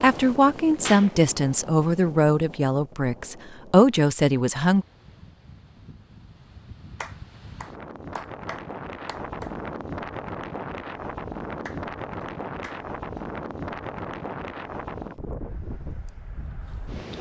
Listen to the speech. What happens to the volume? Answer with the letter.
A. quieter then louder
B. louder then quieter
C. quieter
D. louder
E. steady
A.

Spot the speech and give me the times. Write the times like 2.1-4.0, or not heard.
0.0-4.8.